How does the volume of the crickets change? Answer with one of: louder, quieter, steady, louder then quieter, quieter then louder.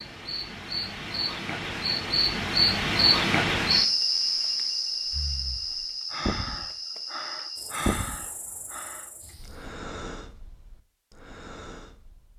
louder then quieter.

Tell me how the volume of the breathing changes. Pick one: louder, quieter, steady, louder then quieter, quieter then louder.
louder then quieter.